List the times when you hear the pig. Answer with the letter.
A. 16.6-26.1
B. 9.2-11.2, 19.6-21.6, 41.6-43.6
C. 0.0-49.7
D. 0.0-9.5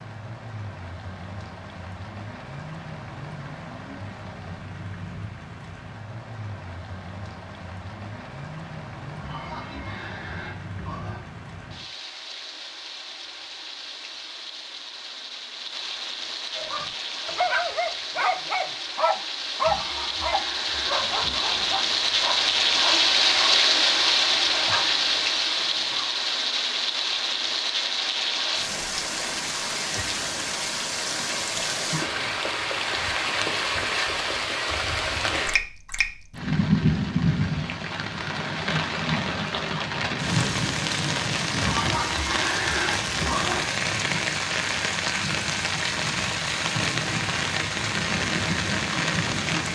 B.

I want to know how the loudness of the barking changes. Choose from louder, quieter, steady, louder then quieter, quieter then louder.
quieter.